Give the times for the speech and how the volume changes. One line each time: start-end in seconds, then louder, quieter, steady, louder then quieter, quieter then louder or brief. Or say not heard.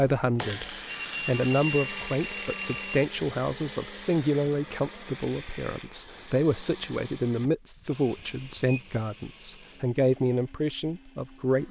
0.0-11.6 steady.